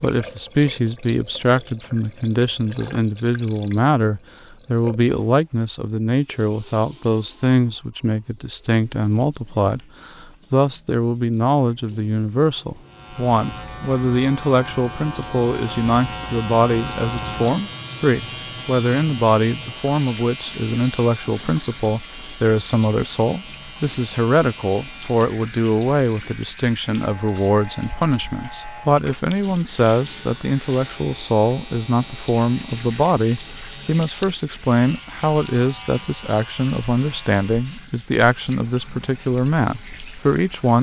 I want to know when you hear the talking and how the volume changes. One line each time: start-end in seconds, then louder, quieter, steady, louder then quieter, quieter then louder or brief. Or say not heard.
0.0-40.7 steady.